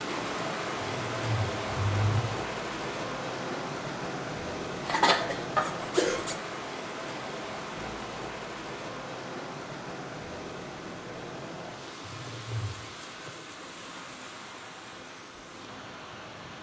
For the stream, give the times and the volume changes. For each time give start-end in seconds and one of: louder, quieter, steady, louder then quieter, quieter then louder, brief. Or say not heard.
0.0-16.5 quieter.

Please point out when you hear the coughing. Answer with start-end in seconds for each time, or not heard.
4.8-6.3.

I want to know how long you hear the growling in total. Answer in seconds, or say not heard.
3 s.